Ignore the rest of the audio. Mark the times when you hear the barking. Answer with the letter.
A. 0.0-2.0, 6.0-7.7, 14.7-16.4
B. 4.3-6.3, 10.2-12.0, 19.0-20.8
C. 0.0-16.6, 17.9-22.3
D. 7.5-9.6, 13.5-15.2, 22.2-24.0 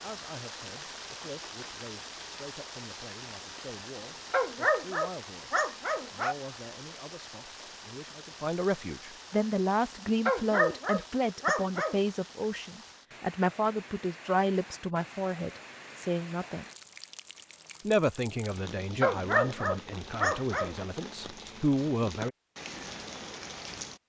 B.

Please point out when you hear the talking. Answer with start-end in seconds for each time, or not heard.
0.0-16.6, 17.9-22.3.